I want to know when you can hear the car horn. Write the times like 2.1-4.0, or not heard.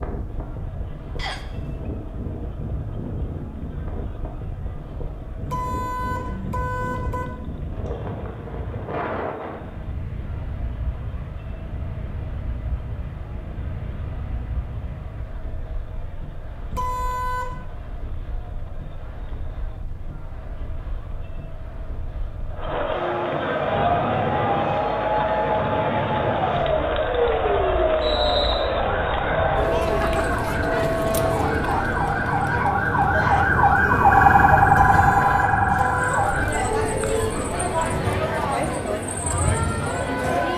5.5-7.3, 16.7-17.6, 34.7-36.2.